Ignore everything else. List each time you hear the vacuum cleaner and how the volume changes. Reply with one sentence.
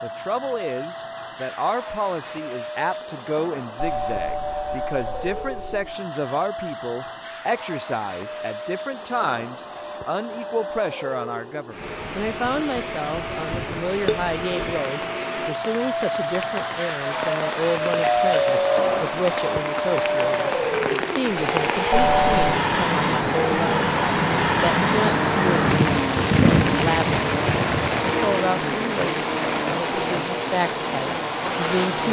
You can hear the vacuum cleaner from 0.0 to 32.0 s, getting louder.